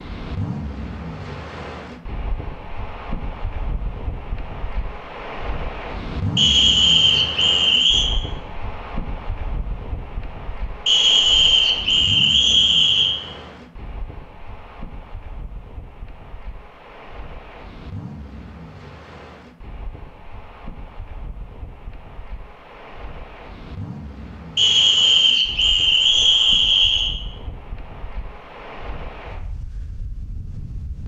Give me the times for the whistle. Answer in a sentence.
You can hear the whistle from 6.3 to 8.1 s, from 10.8 to 13.2 s and from 24.6 to 27.1 s.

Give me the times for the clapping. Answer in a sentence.
The clapping can't be heard in this clip.